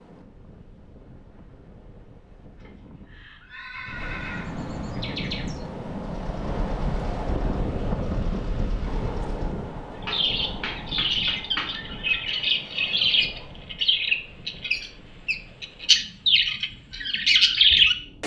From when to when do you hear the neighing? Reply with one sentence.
You can hear the neighing from 2.6 to 4.5 s.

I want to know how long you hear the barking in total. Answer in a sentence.
The barking can't be heard in this clip.